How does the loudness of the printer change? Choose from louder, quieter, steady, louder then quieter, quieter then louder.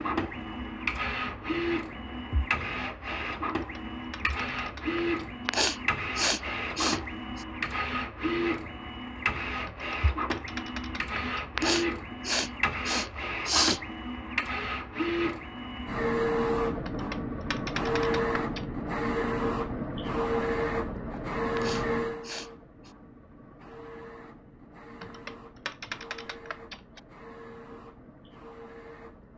quieter.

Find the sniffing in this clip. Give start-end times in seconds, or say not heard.
5.5-7.5, 11.6-13.8, 21.6-22.9.